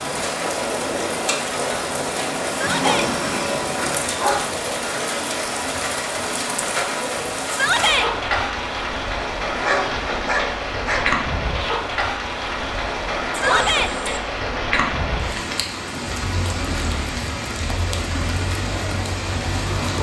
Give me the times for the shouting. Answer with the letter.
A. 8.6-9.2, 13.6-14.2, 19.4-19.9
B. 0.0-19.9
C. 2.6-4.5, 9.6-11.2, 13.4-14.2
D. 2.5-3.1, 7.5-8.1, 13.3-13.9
D.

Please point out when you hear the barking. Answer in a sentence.
The barking can be heard from 2.6 to 4.5 s, from 9.6 to 11.2 s and from 13.4 to 14.2 s.